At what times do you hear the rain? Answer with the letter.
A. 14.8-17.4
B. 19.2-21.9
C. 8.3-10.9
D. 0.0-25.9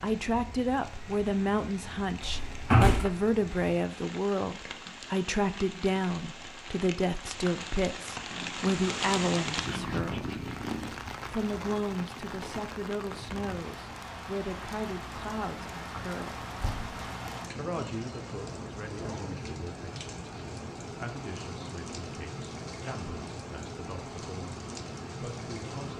D.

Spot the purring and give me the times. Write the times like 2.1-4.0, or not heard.
8.3-10.9.